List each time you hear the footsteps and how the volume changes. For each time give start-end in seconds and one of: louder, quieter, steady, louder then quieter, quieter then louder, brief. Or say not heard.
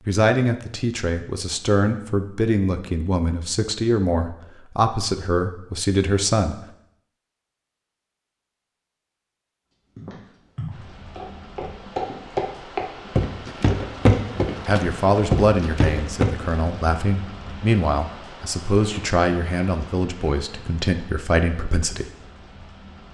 9.9-16.4 louder.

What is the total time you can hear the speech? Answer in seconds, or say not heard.
14 s.